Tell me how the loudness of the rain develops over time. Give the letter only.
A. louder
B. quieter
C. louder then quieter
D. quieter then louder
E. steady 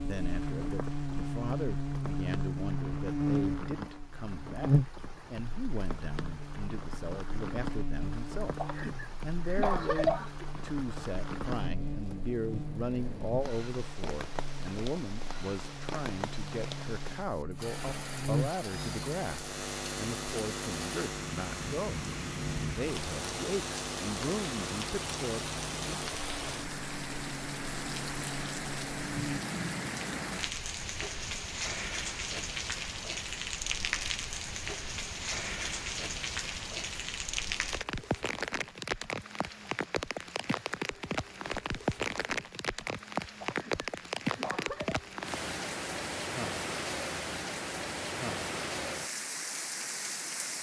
A.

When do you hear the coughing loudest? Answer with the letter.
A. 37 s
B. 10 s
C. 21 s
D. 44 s
B.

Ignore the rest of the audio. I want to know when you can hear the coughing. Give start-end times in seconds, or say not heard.
8.6-10.4, 43.4-45.0.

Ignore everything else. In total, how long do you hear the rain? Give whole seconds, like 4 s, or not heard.
50 s.